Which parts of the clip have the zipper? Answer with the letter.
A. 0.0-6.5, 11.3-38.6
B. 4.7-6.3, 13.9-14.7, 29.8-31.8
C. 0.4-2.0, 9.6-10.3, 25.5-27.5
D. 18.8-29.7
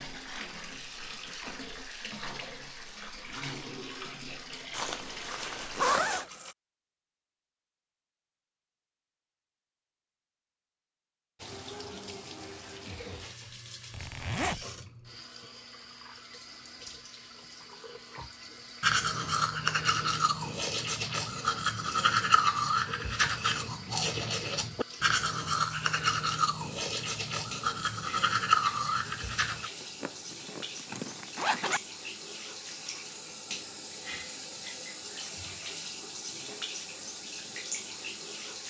B.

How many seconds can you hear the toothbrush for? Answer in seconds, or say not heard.
11 s.